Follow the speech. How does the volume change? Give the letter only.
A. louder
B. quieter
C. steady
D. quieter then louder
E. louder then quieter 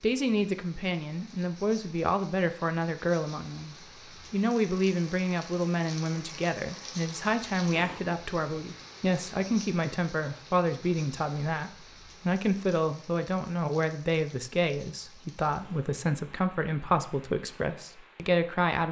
C.